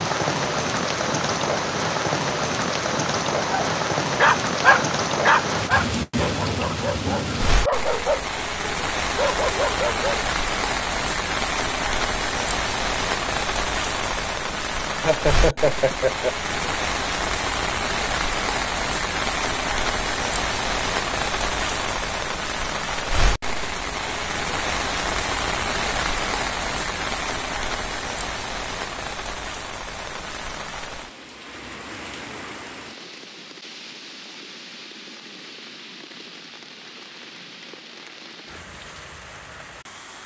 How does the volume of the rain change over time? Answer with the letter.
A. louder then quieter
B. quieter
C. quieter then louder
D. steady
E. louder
B.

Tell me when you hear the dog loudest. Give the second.
5 s.